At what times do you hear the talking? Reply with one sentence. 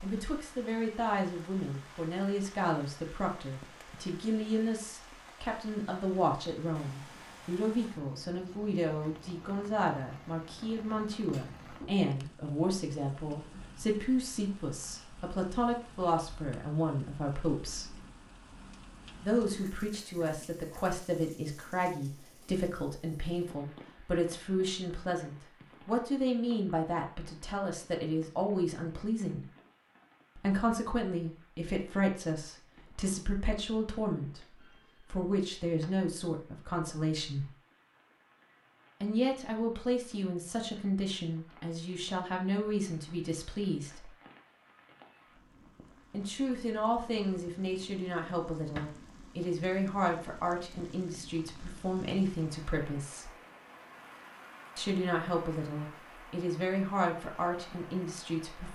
You can hear the talking from 0.0 to 18.0 s, from 19.2 to 29.4 s, from 30.4 to 37.5 s, from 39.0 to 44.1 s, from 46.1 to 53.3 s and from 54.8 to 58.6 s.